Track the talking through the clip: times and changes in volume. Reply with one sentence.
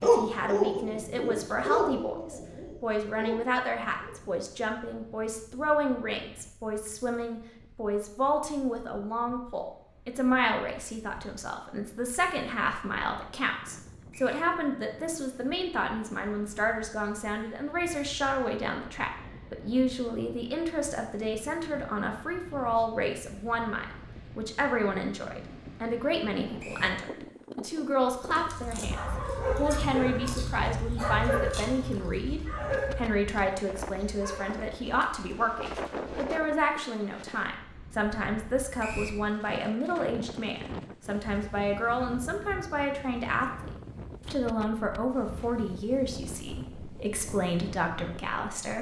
The talking can be heard from 0.0 to 48.7 s, at a steady volume.